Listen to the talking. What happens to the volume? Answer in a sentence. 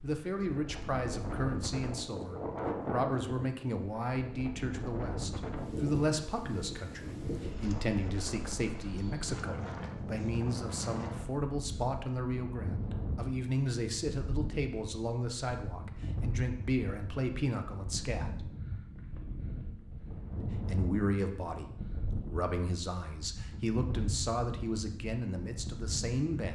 The loudness of the talking stays about the same.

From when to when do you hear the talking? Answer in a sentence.
You can hear the talking from 0.0 to 18.5 s and from 20.4 to 26.5 s.